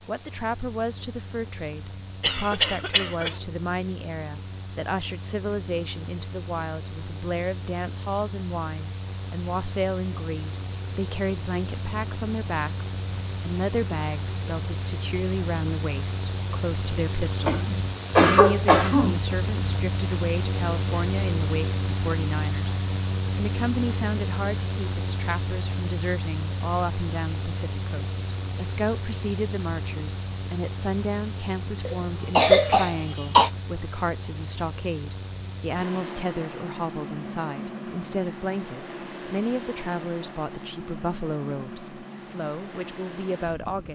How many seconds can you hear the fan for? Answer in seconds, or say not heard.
44 s.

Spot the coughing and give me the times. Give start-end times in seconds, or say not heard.
2.2-3.4, 17.4-19.2, 31.9-33.5.